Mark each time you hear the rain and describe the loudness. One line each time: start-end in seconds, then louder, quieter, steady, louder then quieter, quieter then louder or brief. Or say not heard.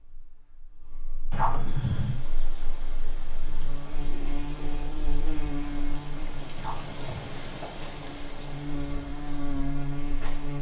1.8-10.5 louder then quieter.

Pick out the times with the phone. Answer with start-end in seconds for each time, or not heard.
1.3-2.2, 6.5-7.3.